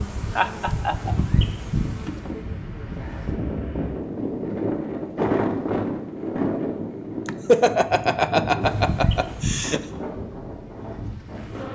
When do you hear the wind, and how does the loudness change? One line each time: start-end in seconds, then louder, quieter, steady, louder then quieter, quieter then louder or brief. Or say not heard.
0.0-11.6 louder then quieter.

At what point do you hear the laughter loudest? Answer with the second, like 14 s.
8 s.